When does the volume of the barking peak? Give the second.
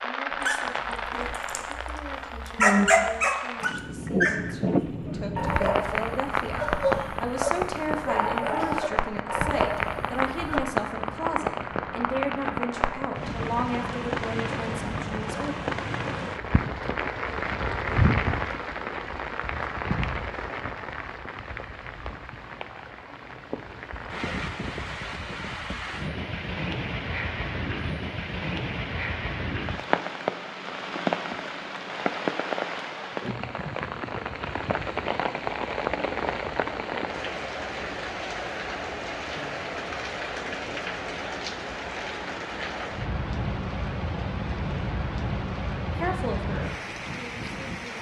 3 s.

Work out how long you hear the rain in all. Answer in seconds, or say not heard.
48 s.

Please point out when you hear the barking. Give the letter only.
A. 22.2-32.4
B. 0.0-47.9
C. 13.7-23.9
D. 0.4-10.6
D.